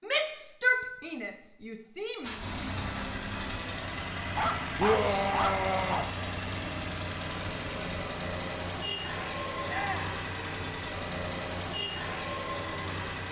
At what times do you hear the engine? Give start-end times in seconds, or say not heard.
2.2-13.2.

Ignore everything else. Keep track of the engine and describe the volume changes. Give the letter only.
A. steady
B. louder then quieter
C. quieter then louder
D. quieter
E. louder
A.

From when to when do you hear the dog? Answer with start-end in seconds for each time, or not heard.
4.3-6.2.